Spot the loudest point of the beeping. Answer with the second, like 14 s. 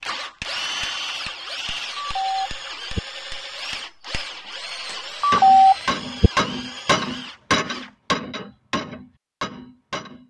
6 s.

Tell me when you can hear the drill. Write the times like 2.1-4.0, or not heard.
0.0-7.9.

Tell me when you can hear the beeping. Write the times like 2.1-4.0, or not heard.
1.9-3.0, 5.2-6.3.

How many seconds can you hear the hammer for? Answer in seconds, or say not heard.
10 s.